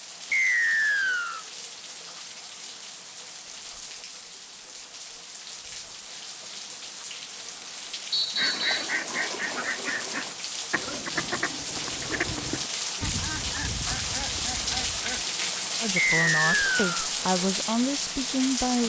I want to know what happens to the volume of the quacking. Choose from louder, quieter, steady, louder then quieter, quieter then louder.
quieter.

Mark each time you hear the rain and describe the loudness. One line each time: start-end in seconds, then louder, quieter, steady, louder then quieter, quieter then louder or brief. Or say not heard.
0.0-18.8 louder.